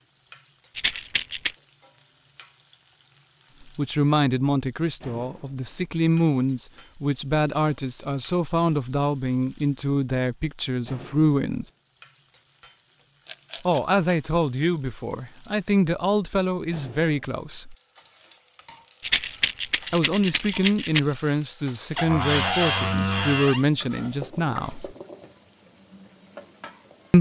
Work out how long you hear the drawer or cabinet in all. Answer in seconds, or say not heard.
2 s.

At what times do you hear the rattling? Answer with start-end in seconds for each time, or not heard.
0.8-1.6, 13.2-13.9, 19.0-21.0.